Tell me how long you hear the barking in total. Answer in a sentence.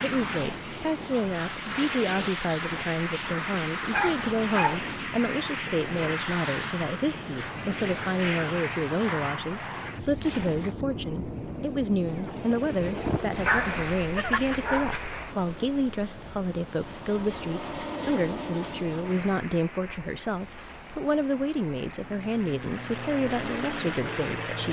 You can hear the barking for 3 seconds altogether.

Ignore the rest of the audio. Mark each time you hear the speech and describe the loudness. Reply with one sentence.
You can hear the speech from 0.0 to 24.6 s, at a steady volume.